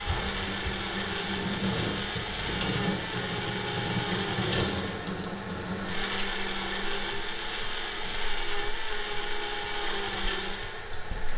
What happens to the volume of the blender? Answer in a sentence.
The volume of the blender stays about the same.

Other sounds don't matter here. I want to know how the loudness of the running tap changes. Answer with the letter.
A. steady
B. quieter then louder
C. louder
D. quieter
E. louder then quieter
D.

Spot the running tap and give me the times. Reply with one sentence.
The running tap can be heard from 0.0 to 11.3 s.